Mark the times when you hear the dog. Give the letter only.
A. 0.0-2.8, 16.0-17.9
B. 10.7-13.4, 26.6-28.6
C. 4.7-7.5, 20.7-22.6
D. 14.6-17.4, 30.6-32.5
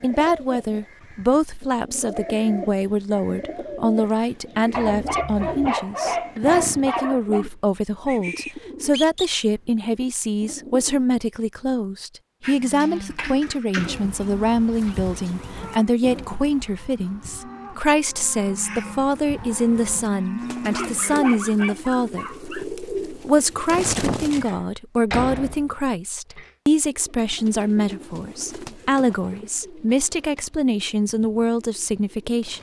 C.